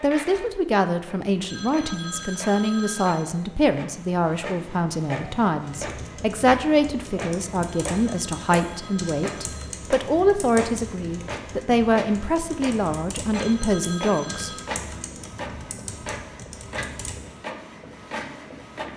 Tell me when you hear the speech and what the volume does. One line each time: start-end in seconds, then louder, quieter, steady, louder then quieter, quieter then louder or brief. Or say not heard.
0.0-14.5 steady.